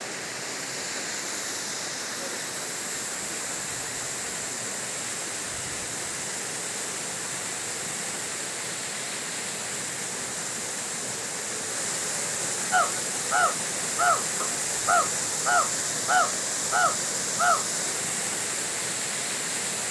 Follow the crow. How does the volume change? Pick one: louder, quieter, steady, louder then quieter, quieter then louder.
steady.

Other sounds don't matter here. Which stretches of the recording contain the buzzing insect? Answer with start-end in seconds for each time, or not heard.
not heard.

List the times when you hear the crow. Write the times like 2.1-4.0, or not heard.
12.7-17.6.